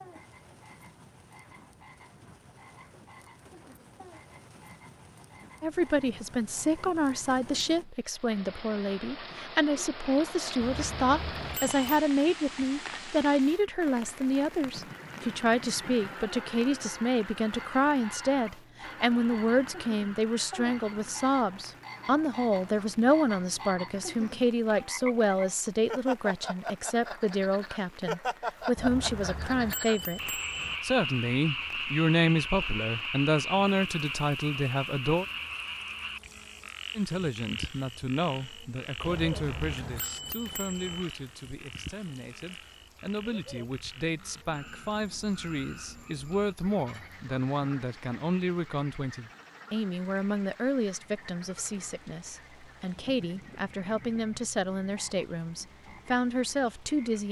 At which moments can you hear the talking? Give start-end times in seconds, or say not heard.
5.6-35.2, 37.0-57.2.